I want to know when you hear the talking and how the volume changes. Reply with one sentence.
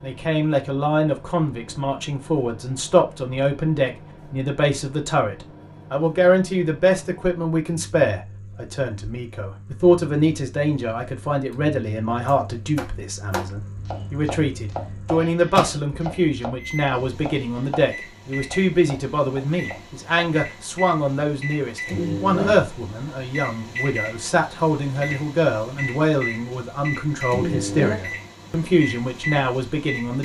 You can hear the talking from 0.0 to 30.1 s, at a steady volume.